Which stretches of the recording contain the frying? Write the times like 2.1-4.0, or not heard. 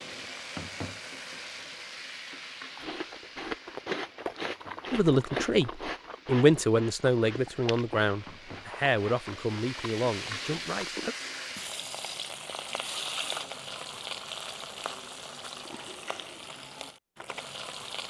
0.0-18.0.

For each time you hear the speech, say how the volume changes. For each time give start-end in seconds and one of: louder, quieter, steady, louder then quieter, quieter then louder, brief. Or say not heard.
4.9-11.2 quieter.